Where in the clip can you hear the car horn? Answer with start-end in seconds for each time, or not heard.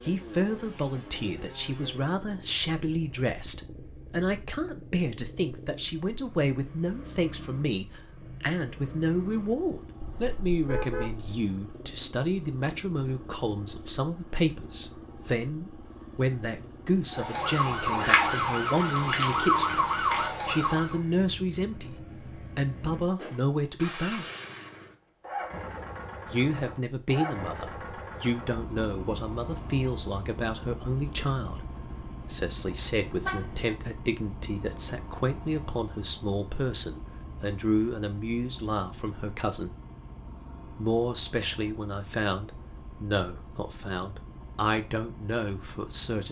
10.0-11.3, 33.0-33.8.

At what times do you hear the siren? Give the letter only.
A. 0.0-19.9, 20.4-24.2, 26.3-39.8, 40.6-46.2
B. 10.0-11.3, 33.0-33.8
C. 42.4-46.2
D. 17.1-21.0
D.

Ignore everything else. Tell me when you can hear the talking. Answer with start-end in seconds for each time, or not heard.
0.0-19.9, 20.4-24.2, 26.3-39.8, 40.6-46.2.